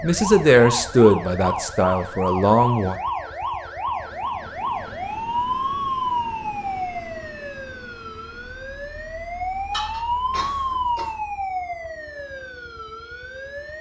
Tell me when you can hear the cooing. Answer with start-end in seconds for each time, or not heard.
not heard.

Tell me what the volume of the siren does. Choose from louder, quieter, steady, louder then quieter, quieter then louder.
steady.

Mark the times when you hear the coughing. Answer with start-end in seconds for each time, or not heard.
9.7-11.2.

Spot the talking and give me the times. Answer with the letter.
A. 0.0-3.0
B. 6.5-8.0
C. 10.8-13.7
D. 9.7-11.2
A.